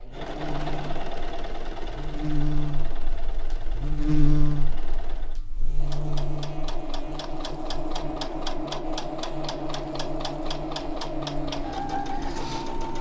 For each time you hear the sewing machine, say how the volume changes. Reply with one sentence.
You can hear the sewing machine from 0.0 to 12.9 s, getting quieter then louder.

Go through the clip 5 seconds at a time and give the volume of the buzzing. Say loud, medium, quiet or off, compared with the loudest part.
loud, medium, medium.